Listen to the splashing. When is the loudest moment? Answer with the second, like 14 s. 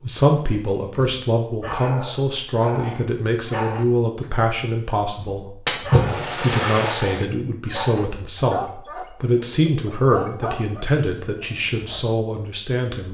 6 s.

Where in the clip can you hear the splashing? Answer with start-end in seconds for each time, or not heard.
5.7-7.2.